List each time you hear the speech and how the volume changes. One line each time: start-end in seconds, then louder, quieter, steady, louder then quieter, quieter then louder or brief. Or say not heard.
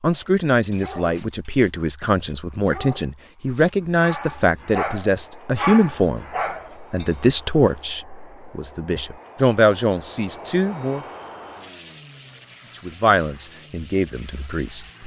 0.0-11.1 steady
12.8-14.8 brief.